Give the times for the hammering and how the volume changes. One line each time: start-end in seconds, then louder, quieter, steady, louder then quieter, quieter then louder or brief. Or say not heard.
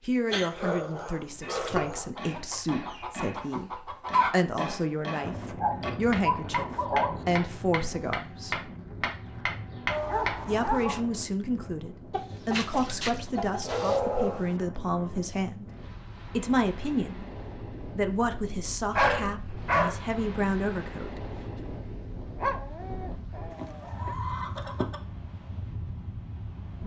1.4-10.3 louder.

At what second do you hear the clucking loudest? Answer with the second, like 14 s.
4 s.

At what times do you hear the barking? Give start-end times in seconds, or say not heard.
0.3-2.1, 5.5-7.2, 9.8-11.0, 13.7-14.6, 18.9-20.1, 22.4-24.1.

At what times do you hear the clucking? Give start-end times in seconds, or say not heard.
1.8-4.3, 12.1-14.0, 23.5-25.0.